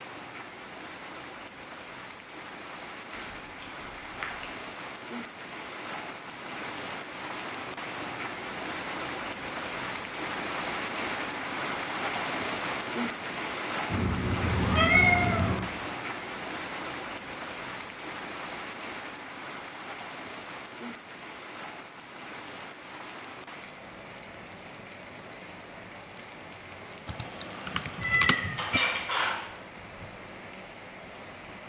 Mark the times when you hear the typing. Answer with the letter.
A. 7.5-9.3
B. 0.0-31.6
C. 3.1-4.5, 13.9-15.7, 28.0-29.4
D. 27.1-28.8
D.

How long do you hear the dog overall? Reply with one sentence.
You can't hear the dog here.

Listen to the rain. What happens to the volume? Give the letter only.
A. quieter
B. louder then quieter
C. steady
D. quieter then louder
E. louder
B.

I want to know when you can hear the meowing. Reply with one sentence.
The meowing can be heard from 3.1 to 4.5 s, from 13.9 to 15.7 s and from 28.0 to 29.4 s.